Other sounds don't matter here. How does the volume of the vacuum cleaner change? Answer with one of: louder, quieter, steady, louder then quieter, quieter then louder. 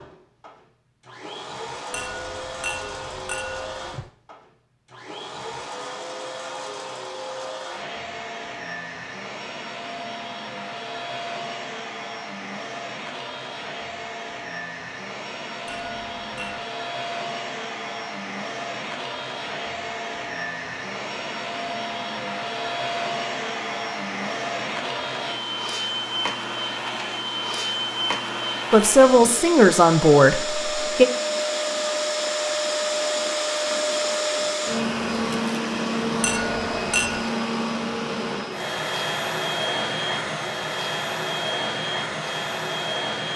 louder.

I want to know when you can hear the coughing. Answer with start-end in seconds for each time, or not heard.
not heard.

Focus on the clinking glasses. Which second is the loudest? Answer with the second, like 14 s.
37 s.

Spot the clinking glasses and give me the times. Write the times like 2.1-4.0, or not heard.
1.9-4.1, 15.7-16.6, 36.2-37.2.